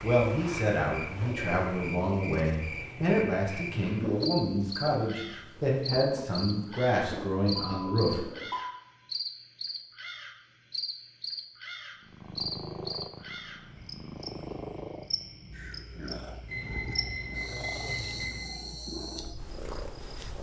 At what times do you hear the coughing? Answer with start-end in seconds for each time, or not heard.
not heard.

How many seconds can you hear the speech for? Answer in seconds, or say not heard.
8 s.